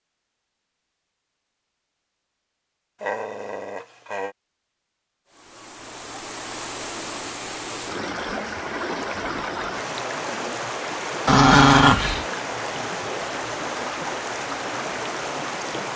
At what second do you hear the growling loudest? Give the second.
12 s.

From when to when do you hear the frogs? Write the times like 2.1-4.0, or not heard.
not heard.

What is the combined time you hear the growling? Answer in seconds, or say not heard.
2 s.